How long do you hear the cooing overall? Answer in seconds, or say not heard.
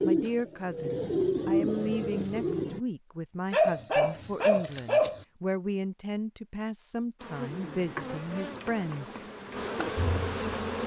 6 s.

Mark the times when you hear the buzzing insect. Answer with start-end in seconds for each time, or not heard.
7.2-10.8.